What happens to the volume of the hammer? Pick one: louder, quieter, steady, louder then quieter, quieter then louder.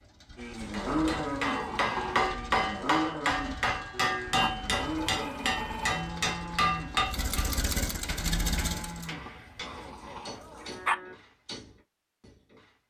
quieter.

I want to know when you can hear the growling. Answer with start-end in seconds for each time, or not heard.
0.8-2.4, 4.3-6.0, 9.1-10.9.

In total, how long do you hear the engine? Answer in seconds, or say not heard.
9 s.